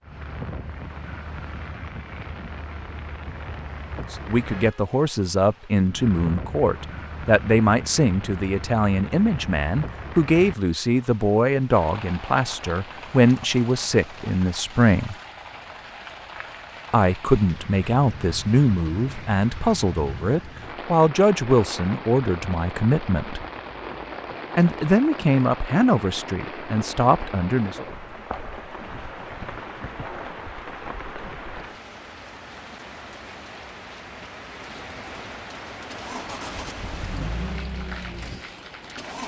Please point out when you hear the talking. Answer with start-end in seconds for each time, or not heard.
4.1-15.2, 16.9-23.4, 24.6-27.8.